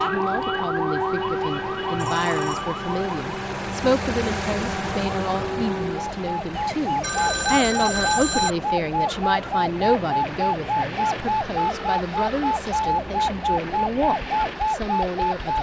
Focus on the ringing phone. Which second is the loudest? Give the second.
8 s.